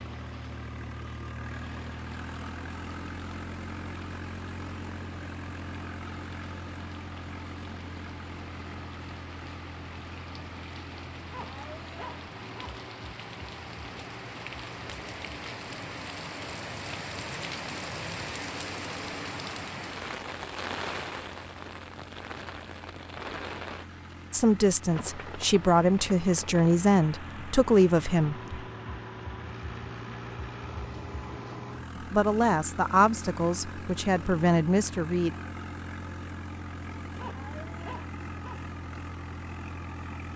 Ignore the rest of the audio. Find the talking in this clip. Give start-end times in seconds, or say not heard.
24.3-28.6, 31.9-35.4.